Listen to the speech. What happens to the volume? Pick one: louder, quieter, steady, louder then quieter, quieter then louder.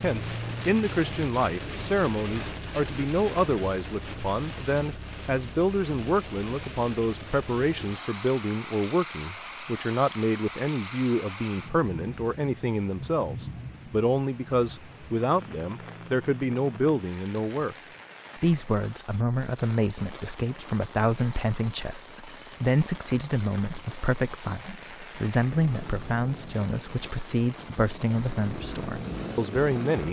steady.